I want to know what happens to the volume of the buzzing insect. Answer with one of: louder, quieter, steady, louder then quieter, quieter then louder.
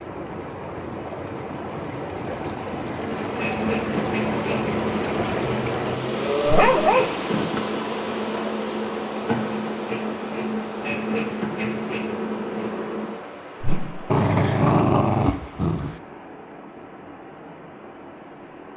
steady.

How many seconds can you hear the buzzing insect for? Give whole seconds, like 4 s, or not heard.
10 s.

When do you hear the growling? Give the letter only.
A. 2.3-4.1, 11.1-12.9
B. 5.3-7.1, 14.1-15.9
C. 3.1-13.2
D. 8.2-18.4
B.